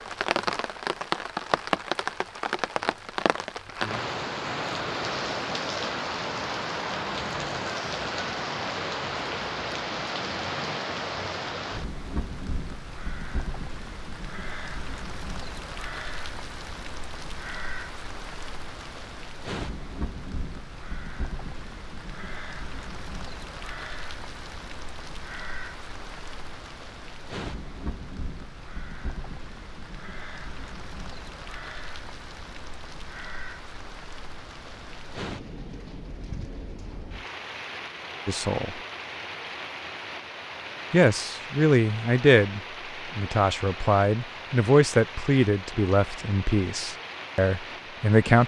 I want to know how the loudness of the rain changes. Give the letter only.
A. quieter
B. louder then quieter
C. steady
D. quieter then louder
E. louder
A.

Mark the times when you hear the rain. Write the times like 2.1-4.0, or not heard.
0.0-48.4.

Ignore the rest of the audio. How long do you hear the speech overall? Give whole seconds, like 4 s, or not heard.
8 s.